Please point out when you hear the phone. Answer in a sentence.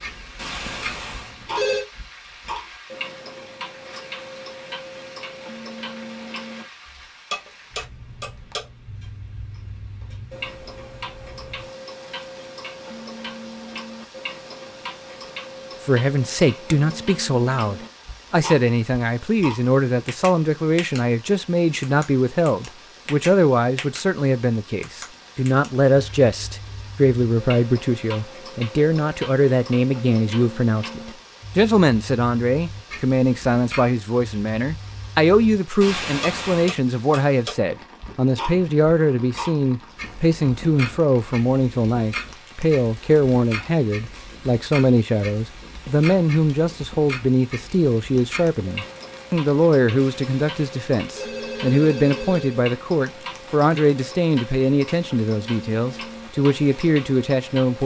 The phone can be heard from 0.3 to 1.9 s, from 35.8 to 36.8 s and from 50.0 to 52.6 s.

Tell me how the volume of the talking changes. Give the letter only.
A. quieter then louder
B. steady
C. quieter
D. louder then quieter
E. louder
B.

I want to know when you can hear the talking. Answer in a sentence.
The talking can be heard from 15.8 to 57.8 s.